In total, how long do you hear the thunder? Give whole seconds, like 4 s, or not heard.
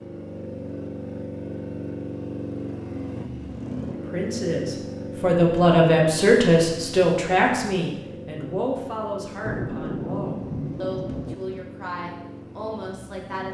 2 s.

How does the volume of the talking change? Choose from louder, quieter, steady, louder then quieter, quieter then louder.
quieter.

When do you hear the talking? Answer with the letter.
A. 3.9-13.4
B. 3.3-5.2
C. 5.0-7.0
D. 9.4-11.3
A.